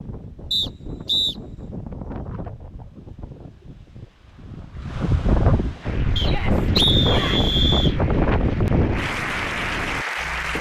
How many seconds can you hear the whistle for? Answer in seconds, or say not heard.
3 s.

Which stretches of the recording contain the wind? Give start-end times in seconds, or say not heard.
0.0-10.5.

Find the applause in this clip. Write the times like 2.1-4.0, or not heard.
5.8-10.5.